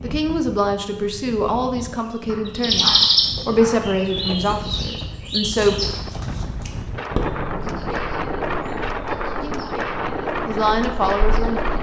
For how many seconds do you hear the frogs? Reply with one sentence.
You can't hear the frogs here.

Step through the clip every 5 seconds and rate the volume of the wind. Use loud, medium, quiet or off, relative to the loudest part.
medium, loud, loud.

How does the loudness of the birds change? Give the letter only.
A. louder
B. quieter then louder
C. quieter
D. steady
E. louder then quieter
C.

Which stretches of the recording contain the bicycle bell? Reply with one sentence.
The bicycle bell can't be heard in this clip.